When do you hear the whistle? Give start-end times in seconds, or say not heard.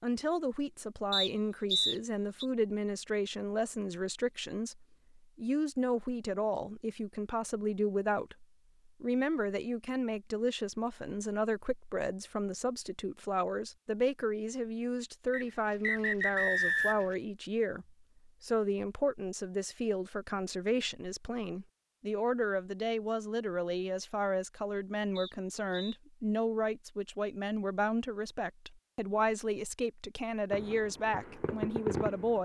1.1-2.5, 15.3-17.1, 25.1-26.0.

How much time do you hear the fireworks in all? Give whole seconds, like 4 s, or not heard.
2 s.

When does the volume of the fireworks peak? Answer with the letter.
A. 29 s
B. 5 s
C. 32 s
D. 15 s
C.